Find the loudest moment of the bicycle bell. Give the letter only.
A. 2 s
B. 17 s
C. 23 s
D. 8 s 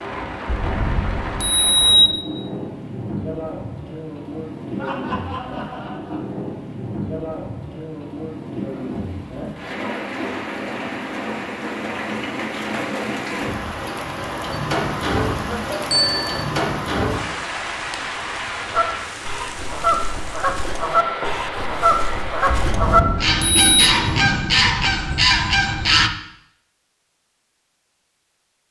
A.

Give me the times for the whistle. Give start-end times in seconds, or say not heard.
not heard.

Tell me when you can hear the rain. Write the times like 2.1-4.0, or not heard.
0.0-24.4.